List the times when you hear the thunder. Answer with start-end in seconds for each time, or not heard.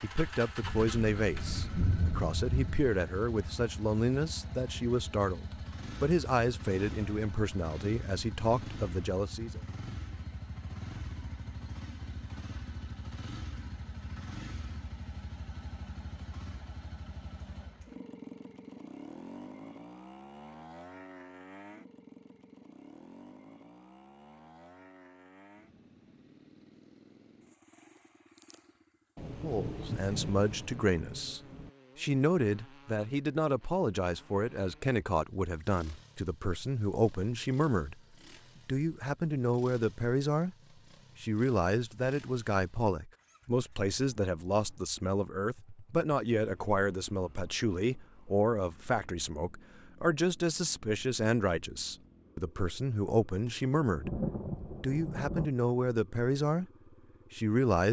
0.6-2.8, 29.1-31.7, 53.9-55.5.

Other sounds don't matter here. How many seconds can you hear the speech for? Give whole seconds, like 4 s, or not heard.
36 s.